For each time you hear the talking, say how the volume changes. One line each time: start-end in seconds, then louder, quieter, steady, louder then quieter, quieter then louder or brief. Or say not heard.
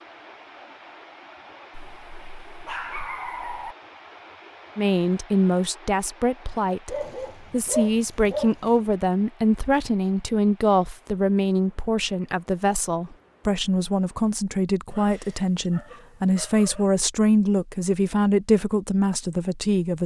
4.8-20.0 steady.